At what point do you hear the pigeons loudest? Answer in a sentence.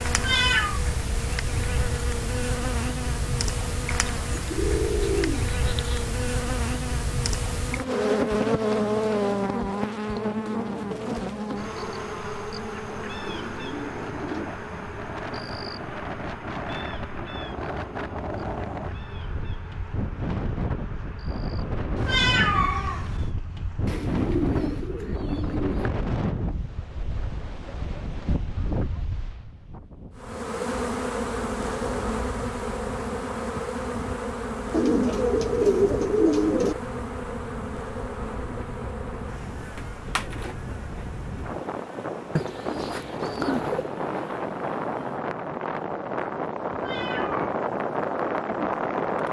The loudest moment of the pigeons is at 36 seconds.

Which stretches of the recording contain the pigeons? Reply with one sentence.
The pigeons can be heard from 4.0 to 6.0 s, from 12.8 to 14.6 s, from 23.9 to 25.9 s, from 34.7 to 36.8 s and from 42.4 to 43.9 s.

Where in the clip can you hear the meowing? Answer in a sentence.
The meowing can be heard from 0.1 to 0.8 s, from 21.9 to 23.3 s and from 46.7 to 47.5 s.